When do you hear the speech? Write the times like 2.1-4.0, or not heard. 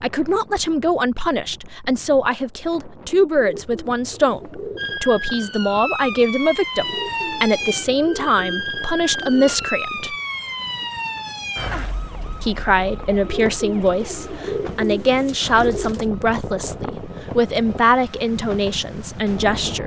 0.0-10.2, 12.4-19.8.